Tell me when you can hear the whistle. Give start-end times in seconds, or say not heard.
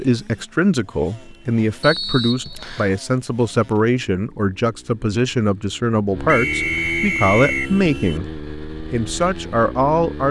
1.8-3.0, 6.2-7.8.